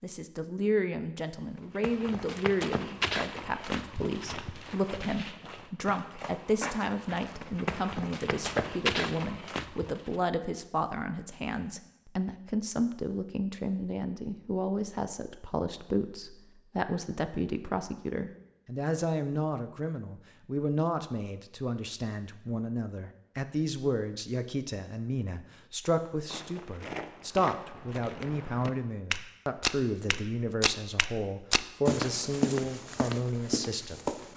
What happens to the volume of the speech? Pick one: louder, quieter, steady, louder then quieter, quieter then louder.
steady.